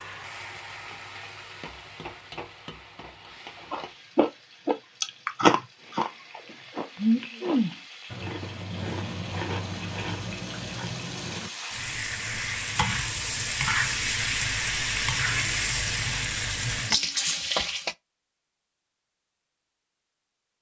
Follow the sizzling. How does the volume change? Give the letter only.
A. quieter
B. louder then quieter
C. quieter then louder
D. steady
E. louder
C.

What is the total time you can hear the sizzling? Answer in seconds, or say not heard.
18 s.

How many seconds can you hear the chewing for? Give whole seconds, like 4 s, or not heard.
8 s.